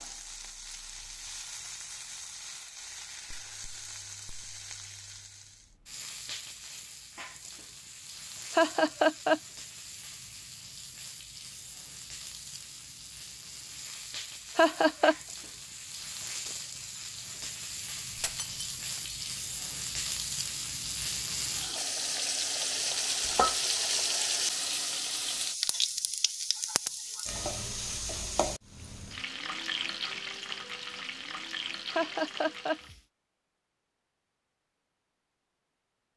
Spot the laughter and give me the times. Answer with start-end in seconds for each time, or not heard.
8.5-9.4, 14.6-15.2, 31.9-32.8.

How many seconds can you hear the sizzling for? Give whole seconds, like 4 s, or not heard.
33 s.